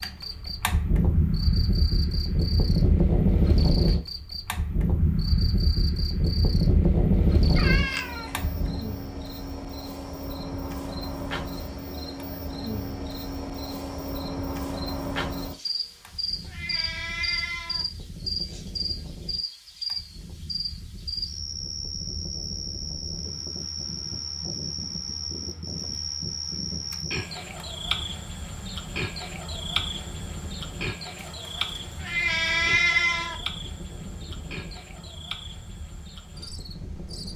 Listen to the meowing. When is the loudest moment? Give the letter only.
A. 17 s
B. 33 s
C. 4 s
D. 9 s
B.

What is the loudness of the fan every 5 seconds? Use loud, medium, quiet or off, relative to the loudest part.
loud, loud, quiet, quiet, quiet, quiet, quiet, quiet.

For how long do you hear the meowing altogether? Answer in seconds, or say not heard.
5 s.